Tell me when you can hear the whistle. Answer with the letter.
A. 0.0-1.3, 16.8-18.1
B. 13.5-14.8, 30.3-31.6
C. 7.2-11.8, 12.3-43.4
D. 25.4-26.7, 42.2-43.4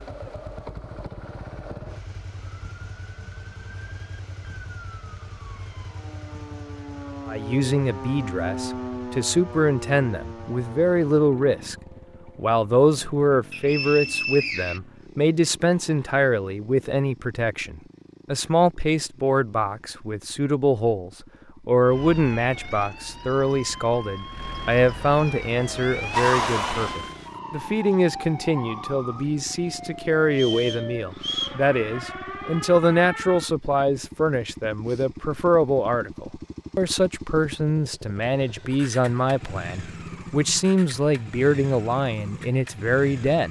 B.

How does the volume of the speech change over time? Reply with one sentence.
The loudness of the speech stays about the same.